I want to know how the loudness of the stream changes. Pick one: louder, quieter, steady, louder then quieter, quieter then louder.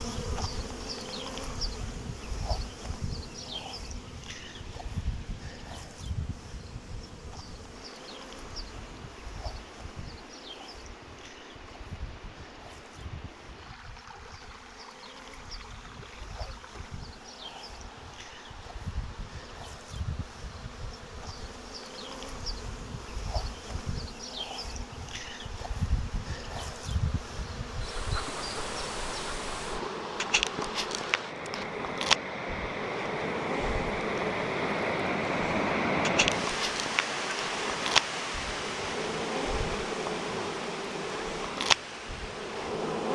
louder.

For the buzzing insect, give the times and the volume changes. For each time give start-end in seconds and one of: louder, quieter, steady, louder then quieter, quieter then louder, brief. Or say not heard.
0.0-43.1 quieter then louder.